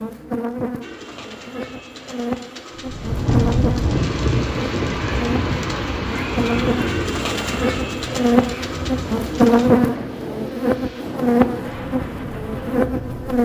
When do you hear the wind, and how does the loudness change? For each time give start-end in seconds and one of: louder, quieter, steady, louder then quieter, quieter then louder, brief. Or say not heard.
2.8-13.4 quieter.